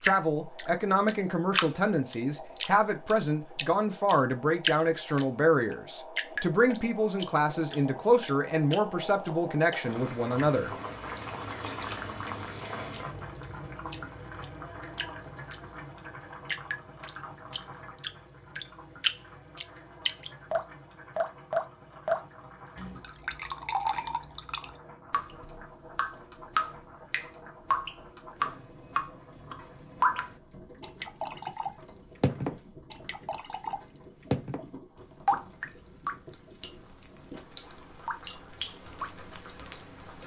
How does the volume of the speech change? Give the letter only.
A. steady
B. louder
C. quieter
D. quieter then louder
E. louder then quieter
A.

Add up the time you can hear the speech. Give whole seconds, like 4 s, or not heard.
11 s.